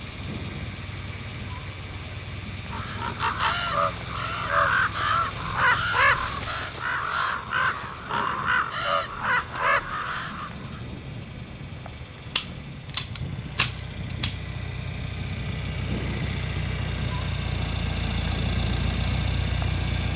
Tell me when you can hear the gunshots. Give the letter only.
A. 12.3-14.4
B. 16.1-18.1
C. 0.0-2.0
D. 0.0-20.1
A.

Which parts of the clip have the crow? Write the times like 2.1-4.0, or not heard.
2.7-10.8.